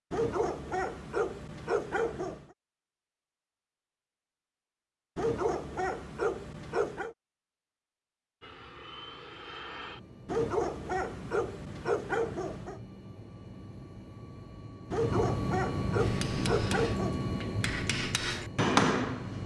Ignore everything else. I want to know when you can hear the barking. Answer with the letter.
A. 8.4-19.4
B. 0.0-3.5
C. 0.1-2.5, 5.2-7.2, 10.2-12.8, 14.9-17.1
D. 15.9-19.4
C.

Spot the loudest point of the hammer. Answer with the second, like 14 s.
19 s.